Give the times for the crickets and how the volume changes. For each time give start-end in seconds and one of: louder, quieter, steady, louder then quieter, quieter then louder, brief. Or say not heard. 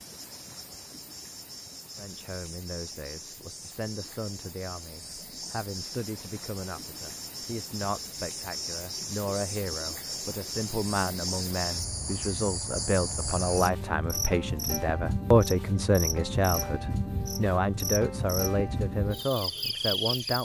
0.0-20.4 louder.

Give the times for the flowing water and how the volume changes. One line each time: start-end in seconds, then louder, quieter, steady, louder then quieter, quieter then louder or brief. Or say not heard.
not heard.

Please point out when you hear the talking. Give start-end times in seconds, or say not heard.
1.9-20.4.